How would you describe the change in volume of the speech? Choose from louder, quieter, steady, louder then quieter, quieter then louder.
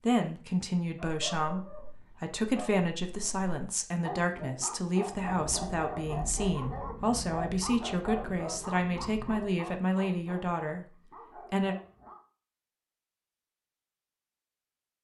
steady.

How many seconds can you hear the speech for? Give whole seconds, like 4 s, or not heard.
12 s.